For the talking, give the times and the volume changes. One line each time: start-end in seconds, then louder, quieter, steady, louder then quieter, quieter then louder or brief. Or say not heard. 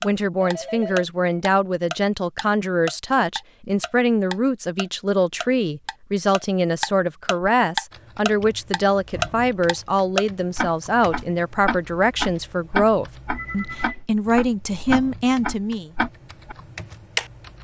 0.0-15.9 steady.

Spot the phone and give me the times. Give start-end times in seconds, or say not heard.
0.4-1.1, 13.3-14.1.